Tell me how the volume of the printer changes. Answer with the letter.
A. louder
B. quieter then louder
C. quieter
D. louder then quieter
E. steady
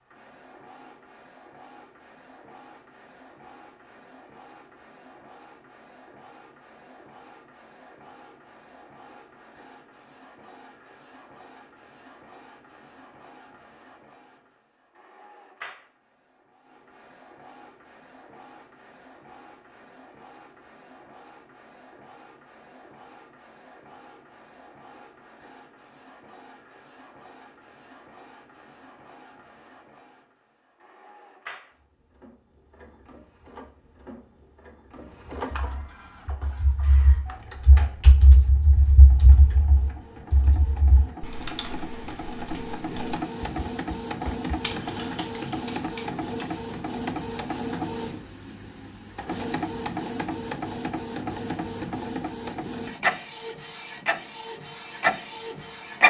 A.